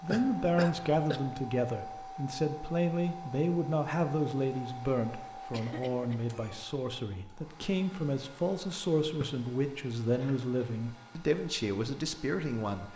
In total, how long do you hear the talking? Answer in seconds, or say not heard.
13 s.